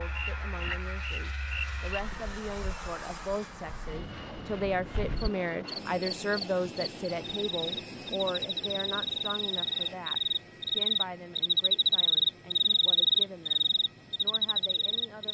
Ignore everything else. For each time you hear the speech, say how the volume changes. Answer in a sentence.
The speech can be heard from 0.0 to 15.3 s, getting louder then quieter.